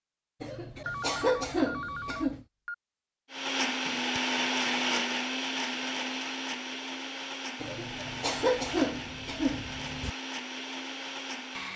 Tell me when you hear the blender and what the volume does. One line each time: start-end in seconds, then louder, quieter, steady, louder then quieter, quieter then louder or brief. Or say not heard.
3.3-11.7 quieter.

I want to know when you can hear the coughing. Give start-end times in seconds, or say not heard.
0.4-2.5, 7.6-10.1.